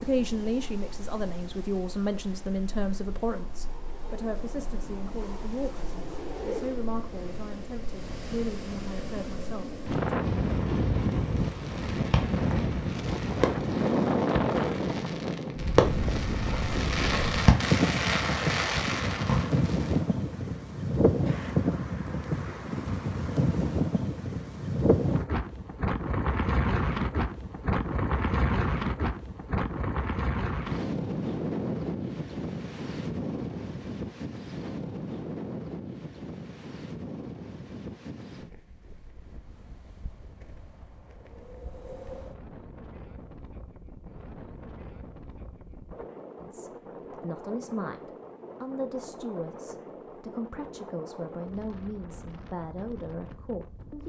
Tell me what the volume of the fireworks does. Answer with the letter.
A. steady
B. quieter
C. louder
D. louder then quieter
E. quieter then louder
E.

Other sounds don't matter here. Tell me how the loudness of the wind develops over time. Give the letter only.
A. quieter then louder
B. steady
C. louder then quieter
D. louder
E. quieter
C.